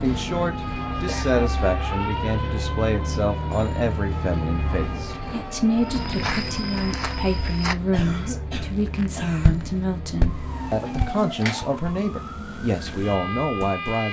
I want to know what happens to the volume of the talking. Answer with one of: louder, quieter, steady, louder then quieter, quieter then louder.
steady.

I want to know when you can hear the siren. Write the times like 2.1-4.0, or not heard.
0.2-7.5, 10.2-14.0.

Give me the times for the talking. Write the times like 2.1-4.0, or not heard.
0.0-14.0.